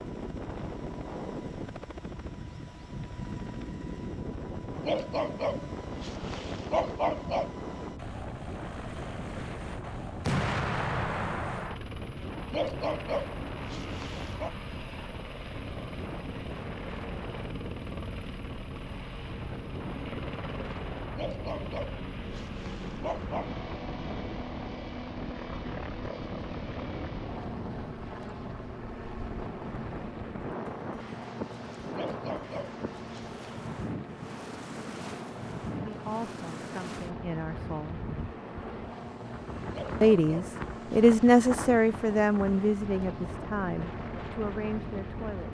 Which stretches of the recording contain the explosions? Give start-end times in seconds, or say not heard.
10.2-11.8.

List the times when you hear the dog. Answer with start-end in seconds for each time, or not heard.
4.8-7.5, 12.5-14.6, 21.1-23.5, 31.9-33.7, 39.7-41.5.